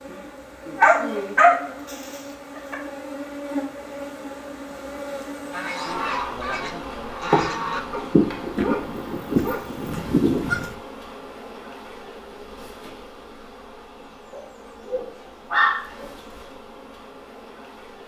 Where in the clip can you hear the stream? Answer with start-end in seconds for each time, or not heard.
not heard.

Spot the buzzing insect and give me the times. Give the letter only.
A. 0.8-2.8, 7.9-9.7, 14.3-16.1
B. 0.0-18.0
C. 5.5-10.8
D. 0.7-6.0
B.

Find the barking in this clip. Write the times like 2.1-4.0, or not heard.
0.8-2.8, 7.9-9.7, 14.3-16.1.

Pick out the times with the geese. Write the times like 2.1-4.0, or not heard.
5.5-10.8.